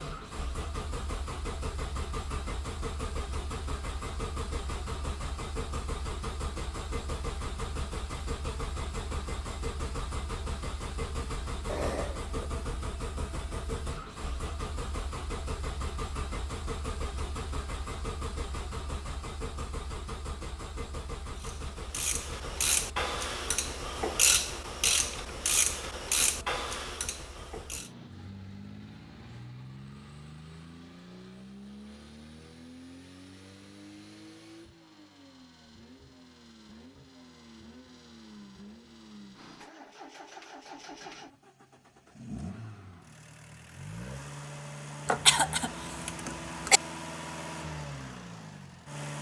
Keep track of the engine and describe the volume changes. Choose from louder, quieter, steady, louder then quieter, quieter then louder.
quieter then louder.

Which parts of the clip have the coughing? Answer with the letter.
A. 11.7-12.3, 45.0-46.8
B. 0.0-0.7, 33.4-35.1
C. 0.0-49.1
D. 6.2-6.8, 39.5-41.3
A.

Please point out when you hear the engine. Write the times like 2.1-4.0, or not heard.
0.0-49.1.